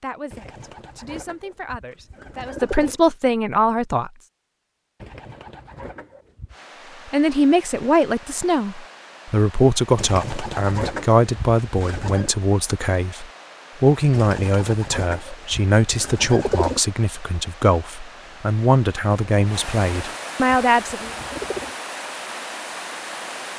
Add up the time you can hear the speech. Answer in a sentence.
You can hear the speech for 18 seconds altogether.